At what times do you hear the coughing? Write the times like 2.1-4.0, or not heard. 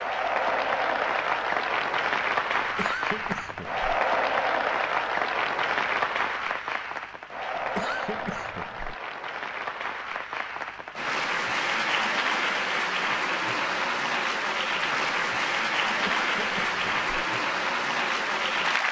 2.5-4.0, 7.5-8.9, 15.8-17.2.